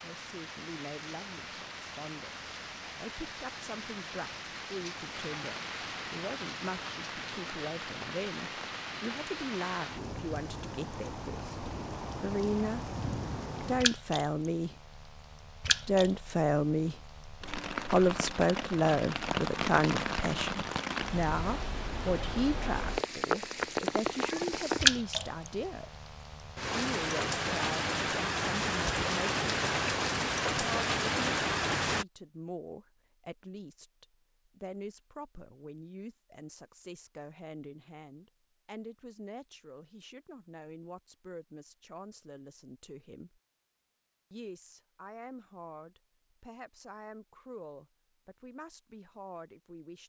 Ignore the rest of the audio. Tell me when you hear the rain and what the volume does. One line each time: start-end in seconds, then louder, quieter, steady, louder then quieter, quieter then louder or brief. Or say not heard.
0.0-32.0 louder.